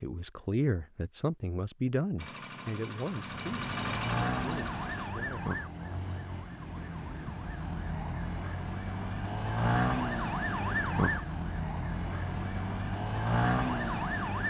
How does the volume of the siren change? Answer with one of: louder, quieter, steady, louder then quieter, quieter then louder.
quieter then louder.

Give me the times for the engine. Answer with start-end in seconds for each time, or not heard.
2.1-5.1.